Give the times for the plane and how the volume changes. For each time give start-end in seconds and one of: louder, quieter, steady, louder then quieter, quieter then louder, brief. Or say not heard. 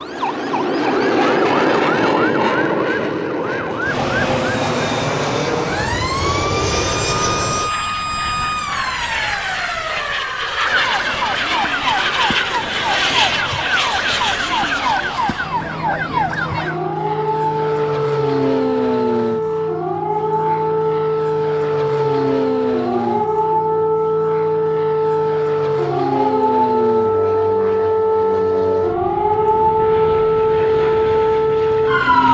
0.0-32.2 quieter.